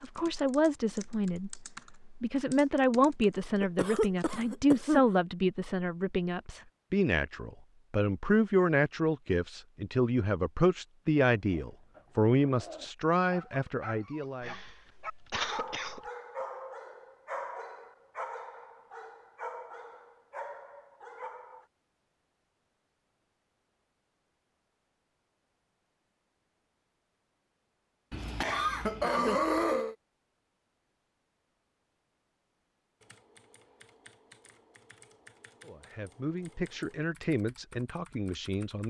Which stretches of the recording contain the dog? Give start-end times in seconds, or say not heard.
11.3-21.6.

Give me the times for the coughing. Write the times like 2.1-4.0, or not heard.
3.6-5.0, 14.4-16.0, 28.1-29.9.